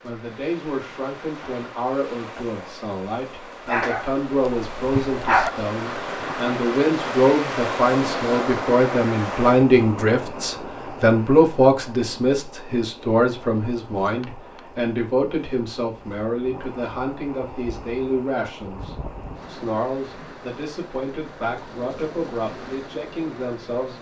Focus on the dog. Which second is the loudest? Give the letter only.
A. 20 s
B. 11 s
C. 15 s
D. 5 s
D.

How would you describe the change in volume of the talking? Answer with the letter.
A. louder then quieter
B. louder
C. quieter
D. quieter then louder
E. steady
A.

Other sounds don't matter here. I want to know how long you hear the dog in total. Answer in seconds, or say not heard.
2 s.